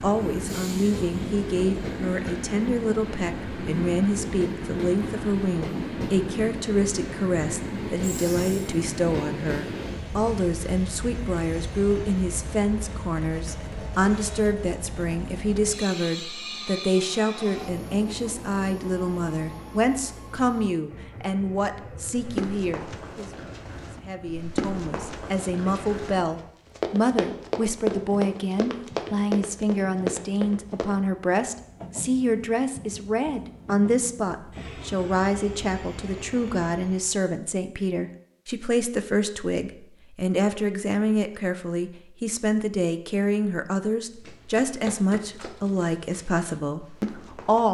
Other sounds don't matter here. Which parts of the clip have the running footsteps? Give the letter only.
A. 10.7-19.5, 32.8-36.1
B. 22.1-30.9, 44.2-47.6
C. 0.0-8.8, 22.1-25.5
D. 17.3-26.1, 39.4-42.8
B.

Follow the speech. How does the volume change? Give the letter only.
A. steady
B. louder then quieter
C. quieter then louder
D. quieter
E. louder
A.